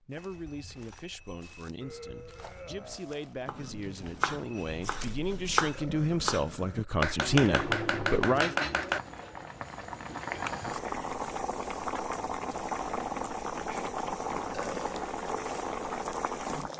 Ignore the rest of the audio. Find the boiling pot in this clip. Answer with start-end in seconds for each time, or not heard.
7.3-16.7.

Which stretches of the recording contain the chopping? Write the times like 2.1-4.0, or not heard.
3.5-9.0.